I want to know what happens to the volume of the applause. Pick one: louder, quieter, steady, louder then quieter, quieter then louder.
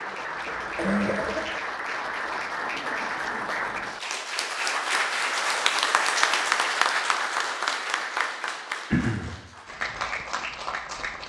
louder then quieter.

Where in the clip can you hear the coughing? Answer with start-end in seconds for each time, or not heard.
0.5-1.5, 8.9-9.3.